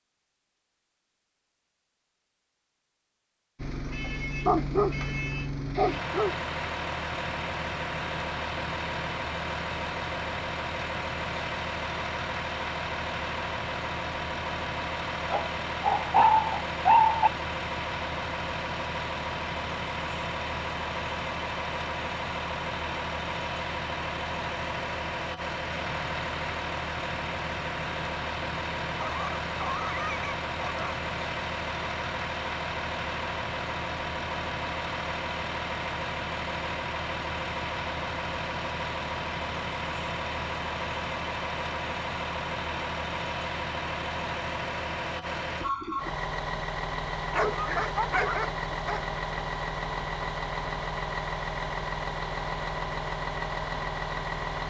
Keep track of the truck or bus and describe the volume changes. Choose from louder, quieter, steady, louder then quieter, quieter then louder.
steady.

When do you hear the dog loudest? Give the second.
17 s.